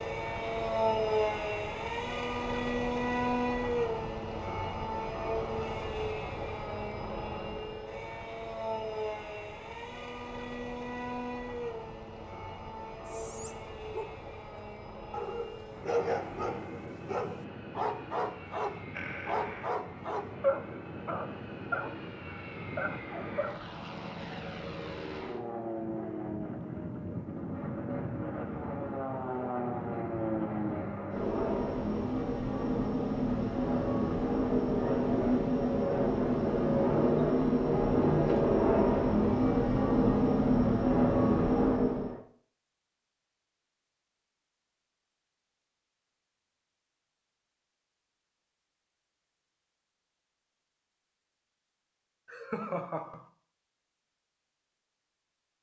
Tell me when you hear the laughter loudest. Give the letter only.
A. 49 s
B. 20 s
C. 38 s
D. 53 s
D.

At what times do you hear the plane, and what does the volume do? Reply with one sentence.
The plane can be heard from 0.0 to 42.2 s, getting quieter then louder.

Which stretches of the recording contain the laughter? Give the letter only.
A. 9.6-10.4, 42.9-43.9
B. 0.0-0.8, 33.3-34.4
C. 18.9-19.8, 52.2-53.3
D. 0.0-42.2
C.